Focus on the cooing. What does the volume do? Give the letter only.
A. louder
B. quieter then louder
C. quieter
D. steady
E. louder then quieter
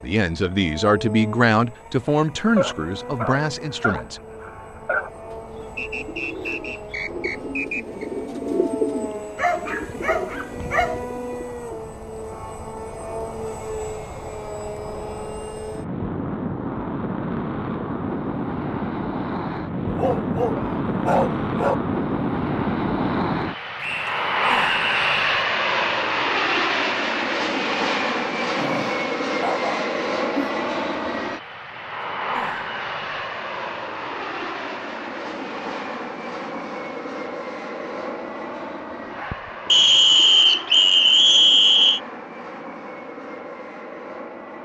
E.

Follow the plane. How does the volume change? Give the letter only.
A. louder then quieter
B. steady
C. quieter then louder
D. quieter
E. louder
A.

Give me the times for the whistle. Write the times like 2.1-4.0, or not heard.
5.8-8.1, 23.8-25.3, 39.6-42.0.